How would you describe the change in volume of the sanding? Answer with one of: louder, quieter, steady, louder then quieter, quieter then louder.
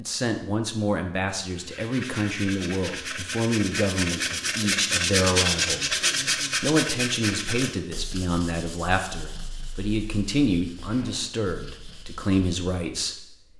louder then quieter.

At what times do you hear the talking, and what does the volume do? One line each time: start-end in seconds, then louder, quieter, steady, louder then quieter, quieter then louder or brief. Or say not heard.
0.0-13.5 steady.